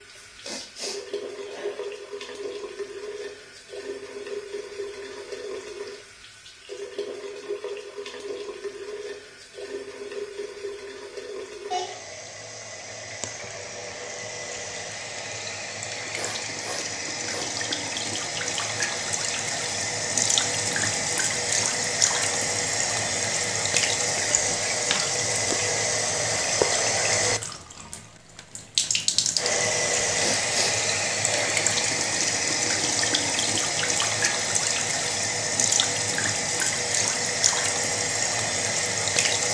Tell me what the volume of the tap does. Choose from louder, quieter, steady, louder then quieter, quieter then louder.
louder.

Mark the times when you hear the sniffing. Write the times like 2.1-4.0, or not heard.
0.2-1.9, 15.8-17.6, 30.1-31.6.